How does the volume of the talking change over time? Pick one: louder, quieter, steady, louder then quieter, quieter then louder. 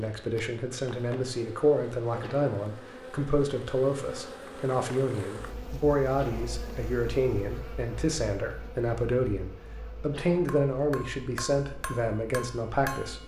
steady.